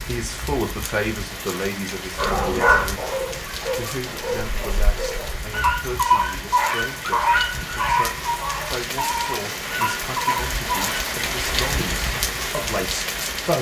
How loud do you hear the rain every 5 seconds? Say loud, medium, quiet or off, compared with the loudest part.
medium, medium, loud.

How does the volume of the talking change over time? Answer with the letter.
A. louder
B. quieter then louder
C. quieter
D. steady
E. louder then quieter
B.